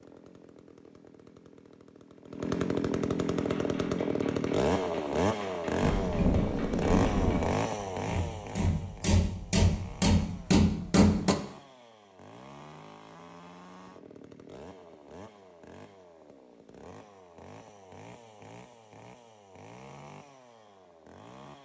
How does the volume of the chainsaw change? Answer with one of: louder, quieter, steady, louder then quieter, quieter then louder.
quieter.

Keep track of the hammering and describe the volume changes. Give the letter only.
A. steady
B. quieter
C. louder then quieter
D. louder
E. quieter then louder
D.